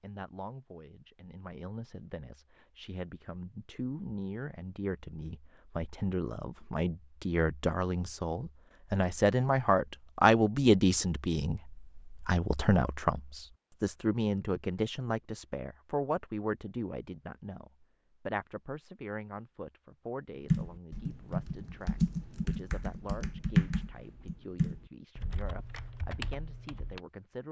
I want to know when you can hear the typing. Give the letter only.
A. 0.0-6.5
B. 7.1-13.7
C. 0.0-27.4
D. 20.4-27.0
D.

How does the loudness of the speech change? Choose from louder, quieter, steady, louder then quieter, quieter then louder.
louder then quieter.